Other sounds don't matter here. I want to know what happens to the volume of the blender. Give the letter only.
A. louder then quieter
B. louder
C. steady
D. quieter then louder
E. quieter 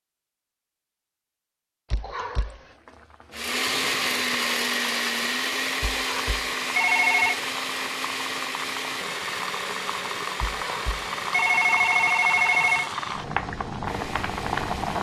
E.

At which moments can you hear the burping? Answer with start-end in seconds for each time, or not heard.
not heard.